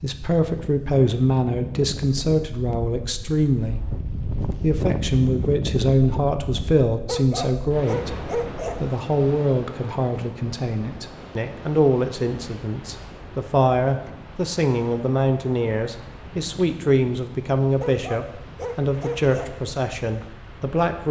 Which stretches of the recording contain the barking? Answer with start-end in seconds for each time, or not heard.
7.0-8.8, 17.8-19.5.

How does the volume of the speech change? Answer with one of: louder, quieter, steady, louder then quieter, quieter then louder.
steady.